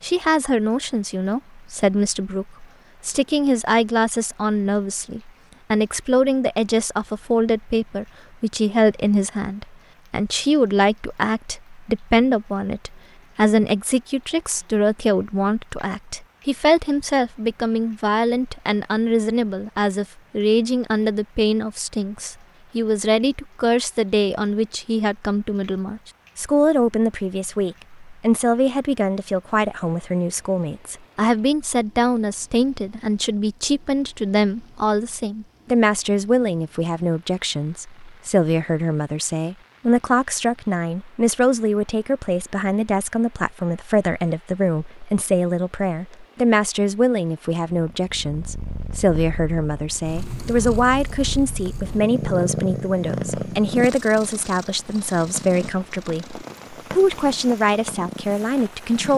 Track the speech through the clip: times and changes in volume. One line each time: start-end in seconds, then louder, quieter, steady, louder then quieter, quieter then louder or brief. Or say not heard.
0.0-59.1 steady.